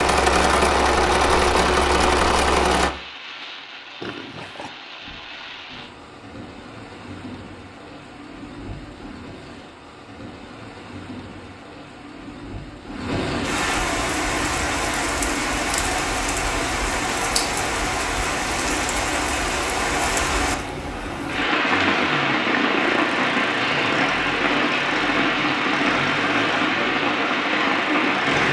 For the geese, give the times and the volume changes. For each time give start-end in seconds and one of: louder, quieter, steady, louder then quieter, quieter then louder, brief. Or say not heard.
not heard.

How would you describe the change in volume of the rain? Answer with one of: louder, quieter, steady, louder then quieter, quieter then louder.
louder.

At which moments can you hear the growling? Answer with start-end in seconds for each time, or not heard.
4.0-4.7, 22.4-23.1.